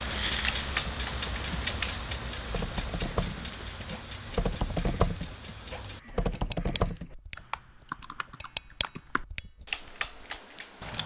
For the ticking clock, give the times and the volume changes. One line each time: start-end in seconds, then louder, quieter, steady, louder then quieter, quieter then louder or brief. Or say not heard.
0.0-11.0 quieter then louder.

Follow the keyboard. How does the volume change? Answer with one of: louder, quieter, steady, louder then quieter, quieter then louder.
louder then quieter.